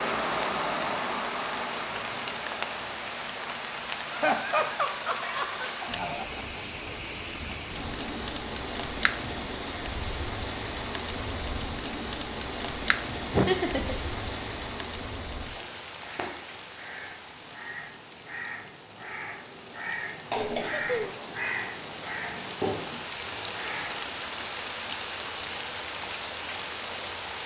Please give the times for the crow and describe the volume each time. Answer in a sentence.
You can hear the crow from 15.4 to 24.1 s, getting louder.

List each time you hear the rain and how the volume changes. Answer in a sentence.
The rain can be heard from 0.0 to 27.4 s, getting quieter then louder.